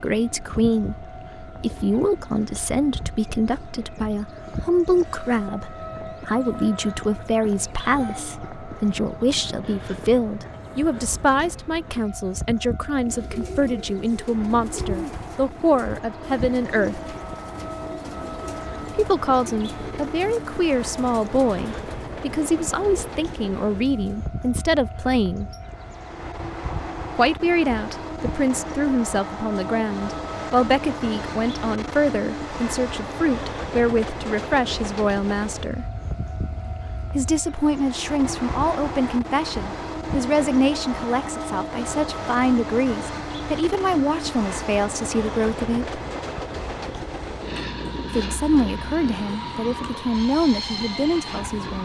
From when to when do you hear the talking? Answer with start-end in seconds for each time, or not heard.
0.0-17.0, 18.9-25.4, 27.1-35.9, 37.1-46.0, 48.1-51.7.